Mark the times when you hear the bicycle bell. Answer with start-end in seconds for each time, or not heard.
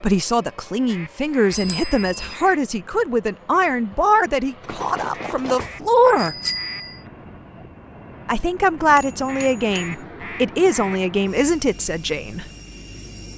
1.5-2.4, 4.7-7.0, 8.9-10.0.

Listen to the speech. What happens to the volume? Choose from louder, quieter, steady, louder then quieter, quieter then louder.
steady.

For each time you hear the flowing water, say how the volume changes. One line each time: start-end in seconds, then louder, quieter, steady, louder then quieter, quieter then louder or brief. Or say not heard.
not heard.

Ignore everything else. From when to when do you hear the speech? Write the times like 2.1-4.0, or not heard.
0.0-6.3, 8.2-12.4.